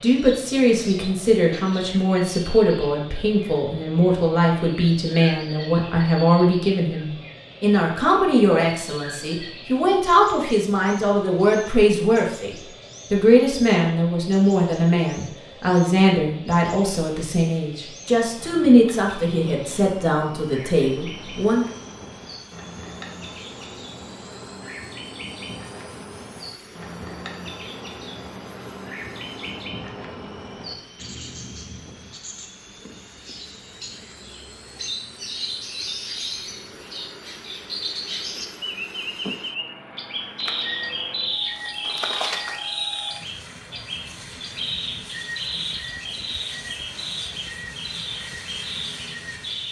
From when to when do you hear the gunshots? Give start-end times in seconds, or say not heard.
not heard.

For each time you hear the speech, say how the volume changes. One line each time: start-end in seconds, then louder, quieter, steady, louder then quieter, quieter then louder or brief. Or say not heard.
0.0-21.6 steady.